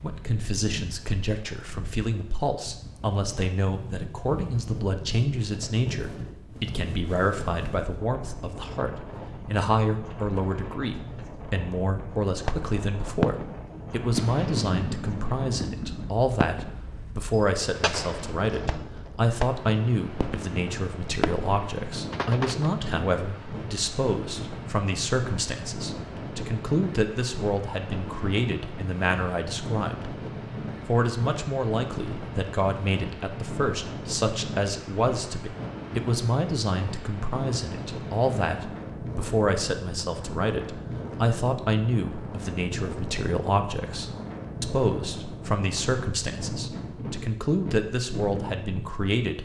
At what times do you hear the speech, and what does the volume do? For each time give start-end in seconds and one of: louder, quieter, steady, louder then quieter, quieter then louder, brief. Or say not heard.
0.0-30.1 steady
30.9-49.3 steady.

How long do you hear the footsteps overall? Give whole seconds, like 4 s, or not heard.
not heard.